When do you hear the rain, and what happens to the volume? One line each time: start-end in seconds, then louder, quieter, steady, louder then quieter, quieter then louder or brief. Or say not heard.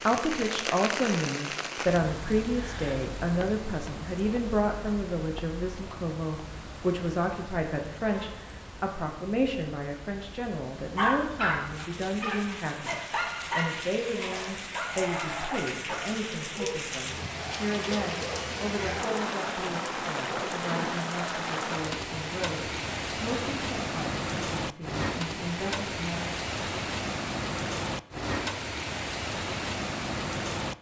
0.0-30.7 quieter then louder.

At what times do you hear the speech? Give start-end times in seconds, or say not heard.
0.0-26.3.